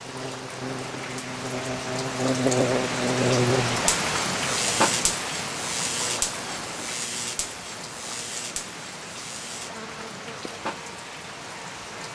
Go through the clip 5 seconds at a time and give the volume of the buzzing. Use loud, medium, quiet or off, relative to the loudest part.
loud, medium, quiet.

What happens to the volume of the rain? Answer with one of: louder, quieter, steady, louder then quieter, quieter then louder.
louder then quieter.